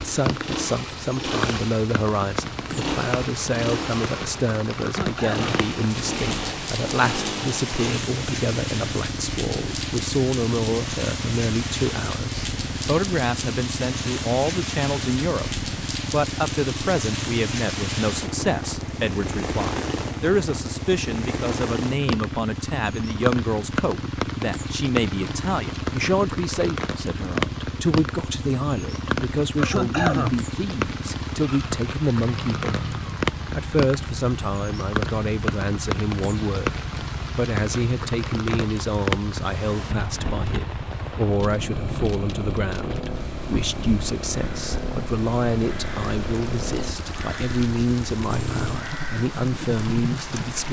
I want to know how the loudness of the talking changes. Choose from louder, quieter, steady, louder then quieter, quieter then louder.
steady.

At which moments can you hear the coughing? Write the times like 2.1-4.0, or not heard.
4.8-5.7, 29.6-30.4.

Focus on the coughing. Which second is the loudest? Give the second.
30 s.